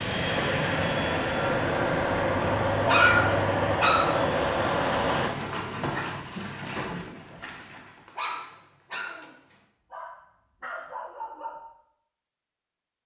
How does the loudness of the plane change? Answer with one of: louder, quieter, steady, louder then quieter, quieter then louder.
steady.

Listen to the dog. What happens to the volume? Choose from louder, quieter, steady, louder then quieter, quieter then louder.
quieter.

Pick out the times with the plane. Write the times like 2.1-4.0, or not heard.
0.0-5.3.